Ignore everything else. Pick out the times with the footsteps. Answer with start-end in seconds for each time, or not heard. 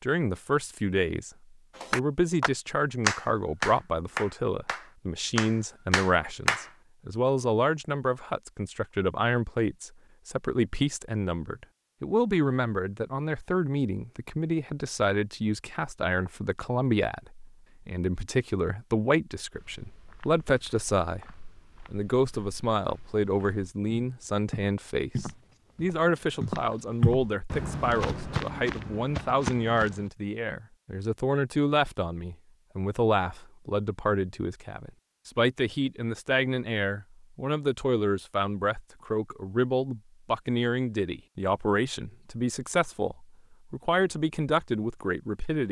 19.5-30.1.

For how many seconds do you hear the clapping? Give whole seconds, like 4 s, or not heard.
5 s.